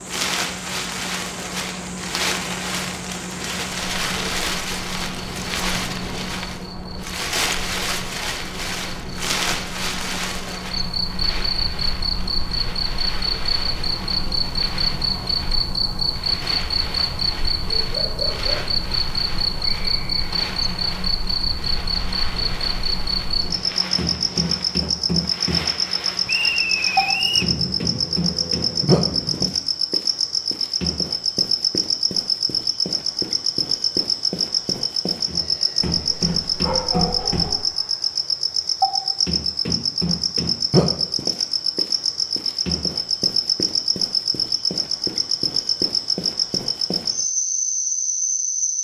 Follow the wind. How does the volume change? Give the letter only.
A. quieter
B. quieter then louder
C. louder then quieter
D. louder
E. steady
A.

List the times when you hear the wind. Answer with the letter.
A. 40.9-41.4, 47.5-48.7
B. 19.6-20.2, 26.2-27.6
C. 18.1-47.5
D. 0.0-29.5
D.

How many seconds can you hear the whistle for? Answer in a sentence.
The whistle can be heard for 2 seconds in total.